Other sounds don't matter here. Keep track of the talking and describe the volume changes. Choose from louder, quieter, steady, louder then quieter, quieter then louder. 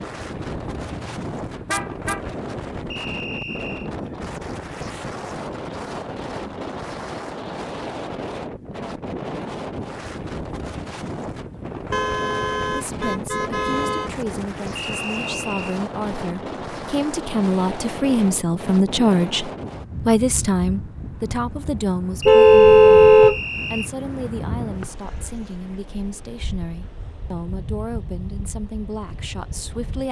louder then quieter.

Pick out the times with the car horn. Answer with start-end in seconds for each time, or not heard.
0.4-2.2, 11.9-14.1, 22.2-23.4.